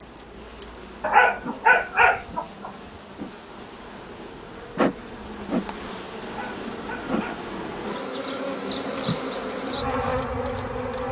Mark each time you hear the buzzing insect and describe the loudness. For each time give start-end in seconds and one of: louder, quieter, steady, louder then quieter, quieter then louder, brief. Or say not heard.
0.0-11.0 louder.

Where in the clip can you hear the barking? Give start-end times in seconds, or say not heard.
1.0-2.7, 6.2-7.5.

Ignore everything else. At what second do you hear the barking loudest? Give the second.
1 s.